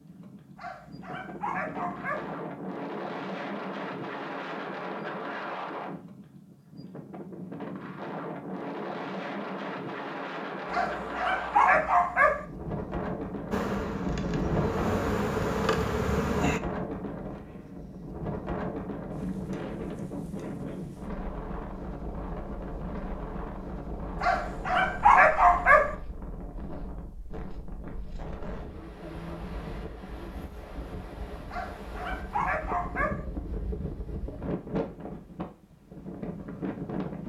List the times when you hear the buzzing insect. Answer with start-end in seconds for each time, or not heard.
13.5-16.6.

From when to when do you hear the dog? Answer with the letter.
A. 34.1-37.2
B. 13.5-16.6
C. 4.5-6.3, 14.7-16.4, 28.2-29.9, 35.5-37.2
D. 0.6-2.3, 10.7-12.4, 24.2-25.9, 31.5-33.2
D.